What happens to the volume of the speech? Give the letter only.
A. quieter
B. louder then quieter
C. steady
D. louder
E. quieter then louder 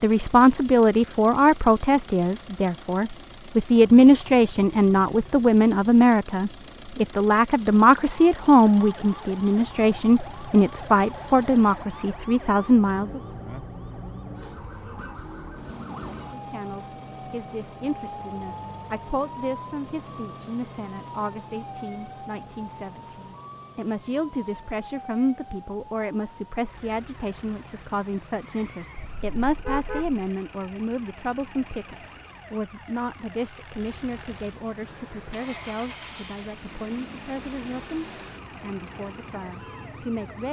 A.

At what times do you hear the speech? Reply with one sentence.
The speech can be heard from 0.0 to 13.2 s and from 16.1 to 40.4 s.